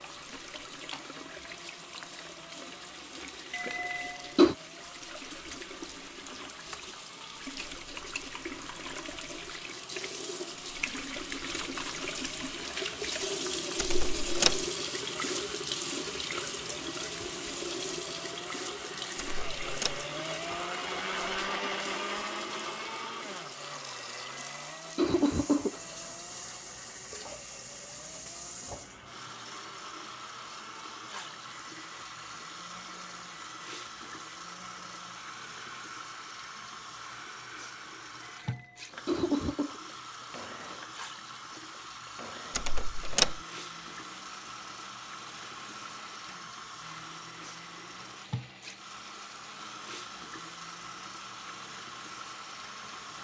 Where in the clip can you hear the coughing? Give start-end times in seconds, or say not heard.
3.5-4.5, 24.3-26.0, 38.4-39.8.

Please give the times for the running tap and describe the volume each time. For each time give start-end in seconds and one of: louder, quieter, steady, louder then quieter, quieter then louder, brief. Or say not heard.
0.0-53.1 louder then quieter.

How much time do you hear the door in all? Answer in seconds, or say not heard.
3 s.